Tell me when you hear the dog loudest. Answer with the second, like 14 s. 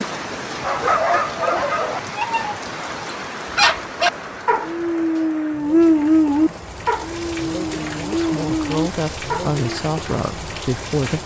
6 s.